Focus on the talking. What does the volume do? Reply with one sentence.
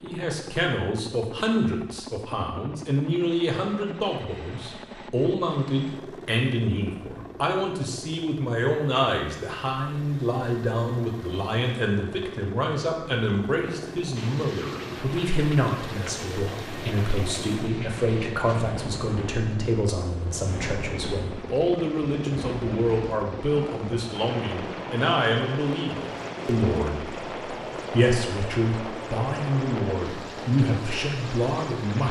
The loudness of the talking stays about the same.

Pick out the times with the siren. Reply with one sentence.
The siren can't be heard in this clip.